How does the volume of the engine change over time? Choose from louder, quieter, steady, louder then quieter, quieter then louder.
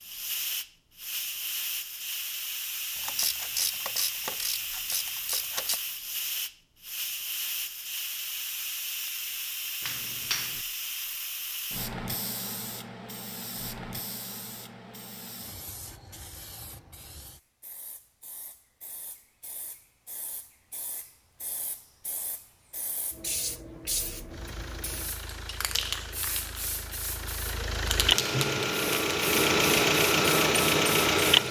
louder.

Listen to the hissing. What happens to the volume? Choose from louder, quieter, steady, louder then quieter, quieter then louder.
quieter then louder.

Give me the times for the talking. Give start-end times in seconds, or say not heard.
not heard.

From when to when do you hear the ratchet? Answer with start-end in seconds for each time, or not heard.
3.0-5.8.